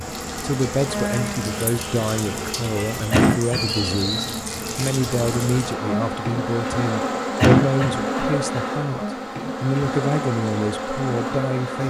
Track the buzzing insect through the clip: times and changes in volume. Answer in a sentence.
The buzzing insect can be heard from 0.0 to 11.8 s, at a steady volume.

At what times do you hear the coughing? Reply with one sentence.
The coughing can be heard from 3.1 to 3.8 s and from 7.3 to 8.6 s.